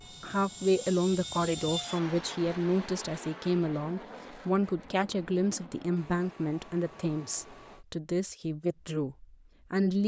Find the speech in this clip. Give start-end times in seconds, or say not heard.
0.2-10.0.